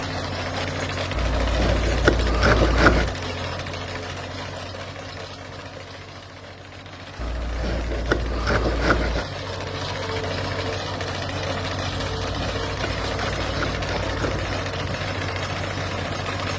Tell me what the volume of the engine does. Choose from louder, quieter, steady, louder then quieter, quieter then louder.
quieter then louder.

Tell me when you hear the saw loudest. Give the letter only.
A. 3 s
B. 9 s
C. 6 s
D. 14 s
A.